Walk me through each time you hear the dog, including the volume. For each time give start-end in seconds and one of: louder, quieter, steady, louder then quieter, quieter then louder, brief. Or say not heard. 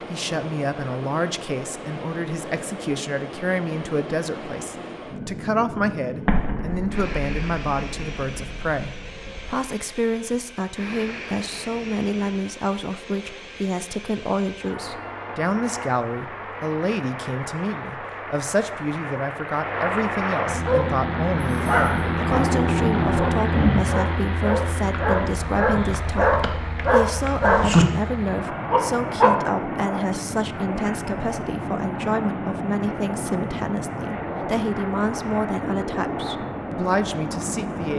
20.6-29.4 louder.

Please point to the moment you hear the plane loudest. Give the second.
23 s.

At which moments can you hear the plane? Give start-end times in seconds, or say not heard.
0.0-37.9.